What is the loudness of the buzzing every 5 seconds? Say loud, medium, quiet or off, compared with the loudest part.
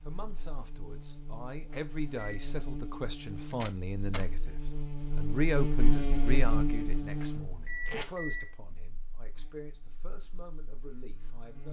medium, loud, quiet.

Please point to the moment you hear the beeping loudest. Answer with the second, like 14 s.
8 s.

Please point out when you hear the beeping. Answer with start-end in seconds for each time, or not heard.
1.7-2.4, 7.2-8.5.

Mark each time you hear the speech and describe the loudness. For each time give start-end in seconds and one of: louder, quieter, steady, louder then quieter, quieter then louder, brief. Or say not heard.
0.0-11.6 louder then quieter.